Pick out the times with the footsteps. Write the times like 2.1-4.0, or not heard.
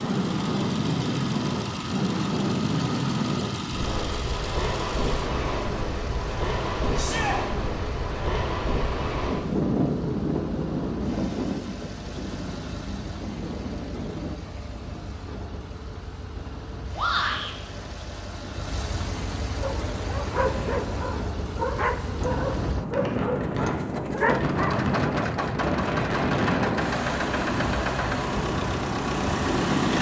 not heard.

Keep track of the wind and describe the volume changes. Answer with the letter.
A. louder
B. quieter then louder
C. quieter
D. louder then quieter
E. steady
B.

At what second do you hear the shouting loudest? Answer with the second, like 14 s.
17 s.